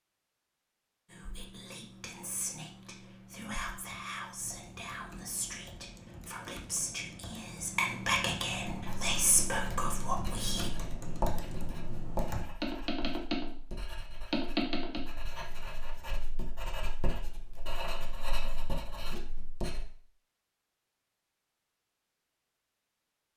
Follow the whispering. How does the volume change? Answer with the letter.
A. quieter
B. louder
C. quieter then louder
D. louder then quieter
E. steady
B.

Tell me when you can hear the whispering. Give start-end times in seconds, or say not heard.
1.1-10.7.